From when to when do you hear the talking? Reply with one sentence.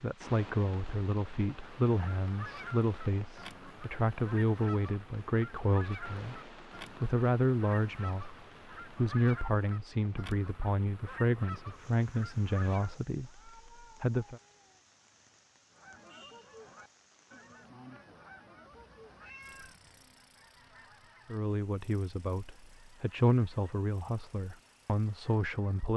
The talking can be heard from 0.0 to 14.4 s and from 21.2 to 25.9 s.